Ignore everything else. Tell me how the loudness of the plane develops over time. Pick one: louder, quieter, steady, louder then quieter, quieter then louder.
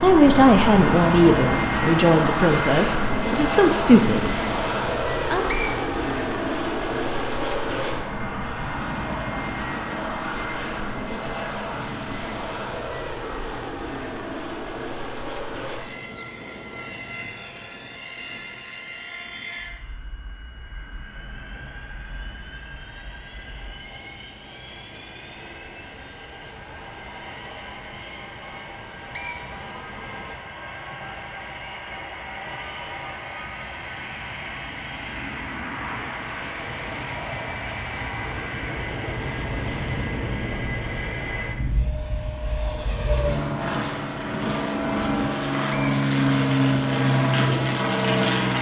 quieter then louder.